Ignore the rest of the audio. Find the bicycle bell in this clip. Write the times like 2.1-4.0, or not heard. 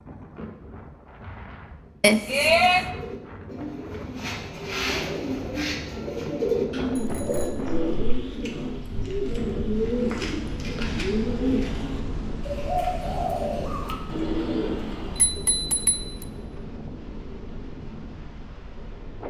2.0-2.9, 7.0-8.3, 15.2-16.2.